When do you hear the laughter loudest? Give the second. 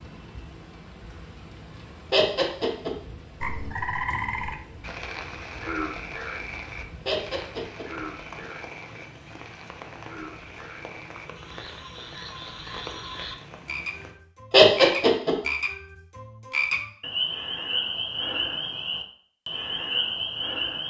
15 s.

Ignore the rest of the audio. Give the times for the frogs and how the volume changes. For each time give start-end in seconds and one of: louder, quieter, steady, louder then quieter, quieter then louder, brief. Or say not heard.
3.4-20.8 quieter then louder.